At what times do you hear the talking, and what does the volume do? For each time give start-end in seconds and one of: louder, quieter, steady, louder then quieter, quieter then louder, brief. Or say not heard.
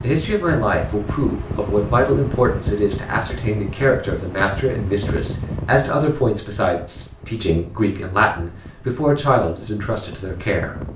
0.0-10.8 steady.